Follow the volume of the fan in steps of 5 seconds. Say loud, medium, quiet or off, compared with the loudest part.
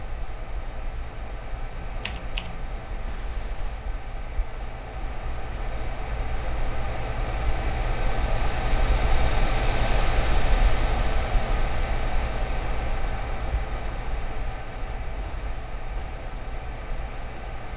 medium, loud, loud, medium.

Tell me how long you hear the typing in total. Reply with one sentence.
The typing can be heard for 2 seconds in total.